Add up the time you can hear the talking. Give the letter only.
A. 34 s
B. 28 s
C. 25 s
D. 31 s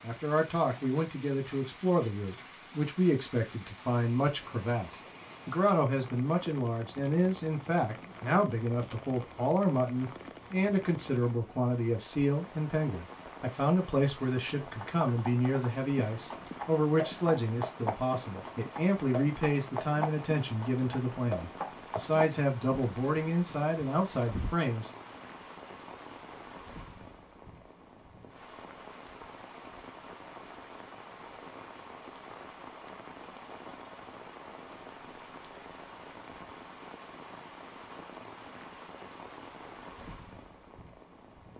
C.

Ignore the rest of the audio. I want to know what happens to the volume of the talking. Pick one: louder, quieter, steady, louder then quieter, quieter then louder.
steady.